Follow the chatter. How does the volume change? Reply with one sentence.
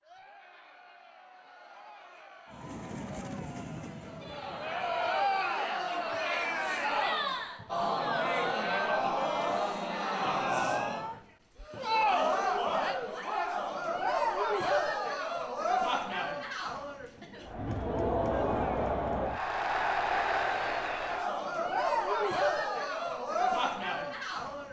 The volume of the chatter goes up.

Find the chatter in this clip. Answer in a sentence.
You can hear the chatter from 0.0 to 24.6 s.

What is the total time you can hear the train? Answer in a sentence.
You can hear the train for 3 seconds altogether.